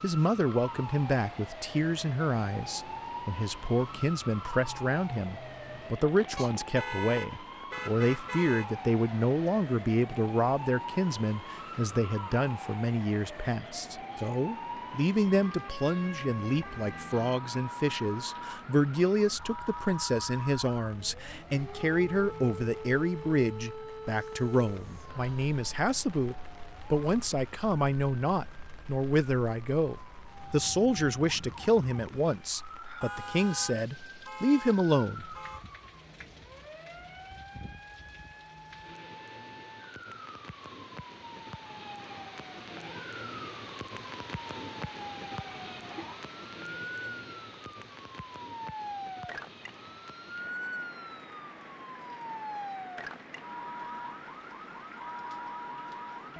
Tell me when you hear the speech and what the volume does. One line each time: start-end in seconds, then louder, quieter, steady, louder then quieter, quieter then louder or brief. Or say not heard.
0.0-35.4 steady.